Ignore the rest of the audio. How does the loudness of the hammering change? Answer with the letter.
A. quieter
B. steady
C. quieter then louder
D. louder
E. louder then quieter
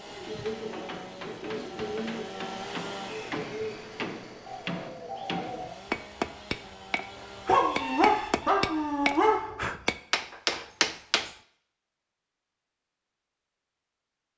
D.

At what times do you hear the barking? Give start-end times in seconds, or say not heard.
7.5-9.4.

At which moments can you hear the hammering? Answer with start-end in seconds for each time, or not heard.
0.2-11.3.